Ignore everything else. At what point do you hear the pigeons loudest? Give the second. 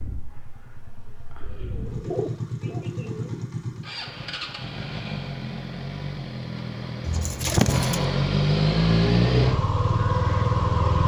8 s.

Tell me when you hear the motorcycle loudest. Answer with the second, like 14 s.
9 s.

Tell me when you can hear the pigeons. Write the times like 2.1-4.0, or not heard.
1.6-3.5, 7.0-8.1.